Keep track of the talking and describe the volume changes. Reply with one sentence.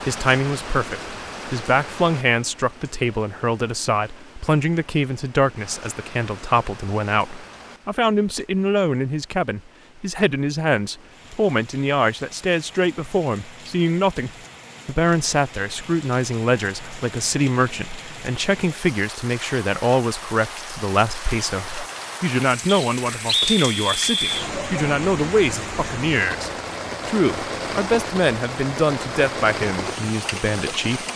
The volume of the talking stays about the same.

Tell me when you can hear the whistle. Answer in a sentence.
The whistle can be heard from 22.6 to 24.4 s.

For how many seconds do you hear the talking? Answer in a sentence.
The talking can be heard for 31 seconds in total.